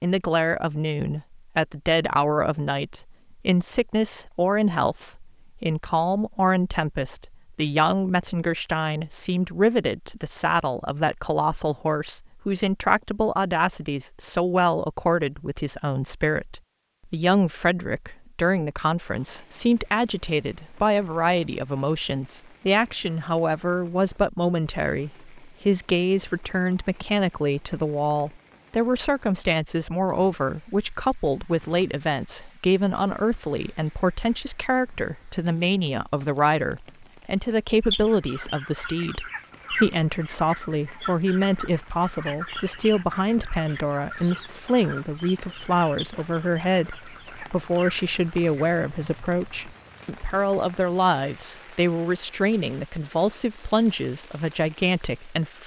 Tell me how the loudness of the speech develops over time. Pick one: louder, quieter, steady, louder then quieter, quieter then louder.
steady.